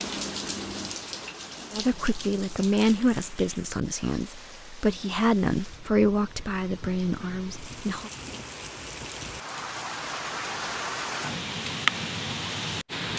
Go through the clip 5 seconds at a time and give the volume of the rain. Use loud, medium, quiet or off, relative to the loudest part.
medium, medium, loud.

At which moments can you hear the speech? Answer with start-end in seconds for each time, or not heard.
1.7-8.1.